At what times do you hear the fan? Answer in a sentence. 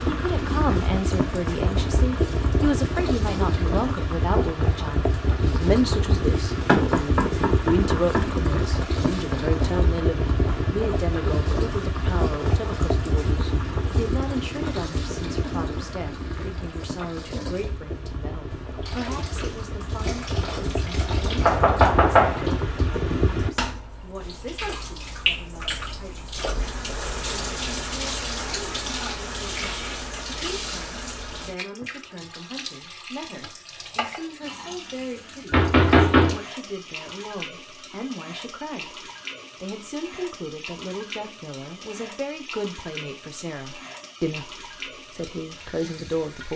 The fan can be heard from 0.0 to 23.6 s.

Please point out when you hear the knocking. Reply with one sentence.
You can hear the knocking from 6.7 to 8.2 s, from 21.4 to 22.4 s and from 35.5 to 36.4 s.